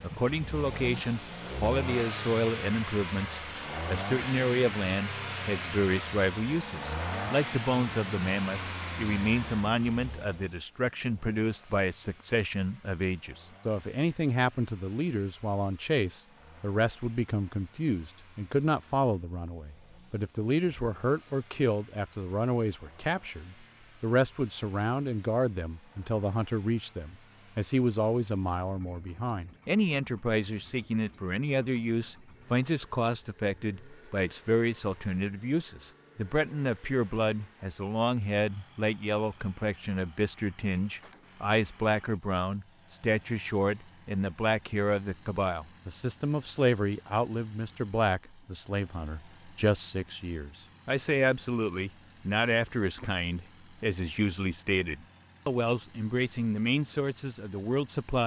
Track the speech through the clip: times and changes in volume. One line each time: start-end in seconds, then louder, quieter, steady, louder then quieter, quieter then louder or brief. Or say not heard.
0.0-58.2 steady.